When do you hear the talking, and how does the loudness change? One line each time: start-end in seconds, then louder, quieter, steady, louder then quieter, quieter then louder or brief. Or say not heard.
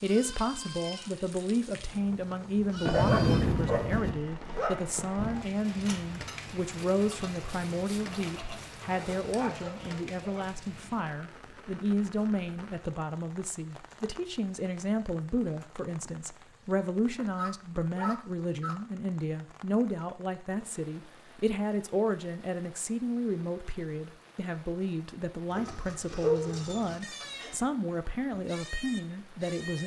0.0-29.8 steady.